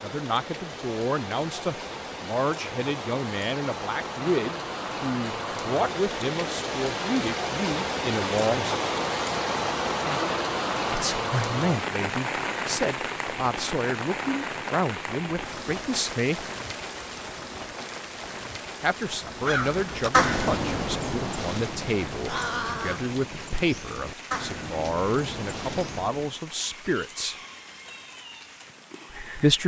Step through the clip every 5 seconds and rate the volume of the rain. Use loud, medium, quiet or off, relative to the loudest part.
medium, loud, loud, medium, quiet, quiet.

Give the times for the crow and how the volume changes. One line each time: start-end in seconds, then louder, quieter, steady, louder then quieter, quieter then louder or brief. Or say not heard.
19.2-26.4 quieter.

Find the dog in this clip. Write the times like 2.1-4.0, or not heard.
not heard.